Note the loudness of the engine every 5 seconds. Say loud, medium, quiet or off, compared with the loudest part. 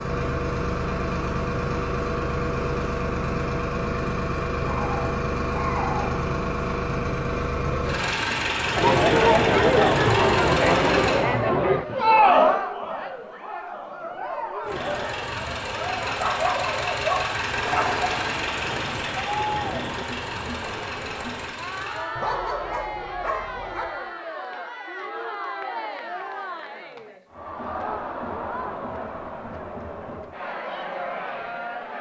loud, loud, loud, loud, medium, off, off.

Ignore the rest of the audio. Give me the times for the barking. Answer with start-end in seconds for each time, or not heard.
4.7-6.1, 16.2-18.1, 22.1-23.9.